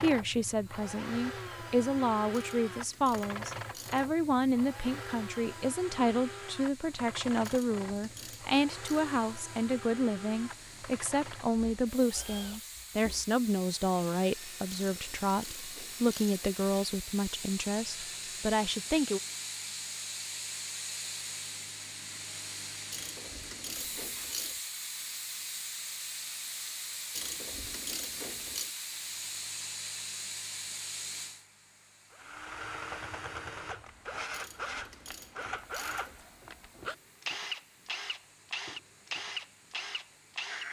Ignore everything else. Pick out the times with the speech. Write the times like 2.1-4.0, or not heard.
0.0-19.2.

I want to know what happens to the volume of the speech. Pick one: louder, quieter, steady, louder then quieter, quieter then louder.
steady.